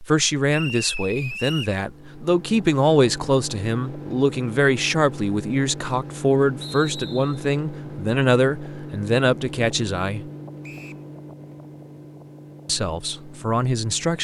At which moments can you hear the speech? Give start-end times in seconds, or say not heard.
0.0-10.2, 12.7-14.2.